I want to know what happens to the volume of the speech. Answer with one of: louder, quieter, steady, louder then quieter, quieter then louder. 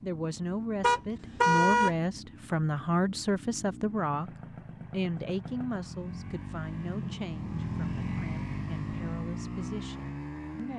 quieter.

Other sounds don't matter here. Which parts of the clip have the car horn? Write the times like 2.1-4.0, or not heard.
0.8-1.9.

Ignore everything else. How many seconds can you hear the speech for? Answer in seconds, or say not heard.
10 s.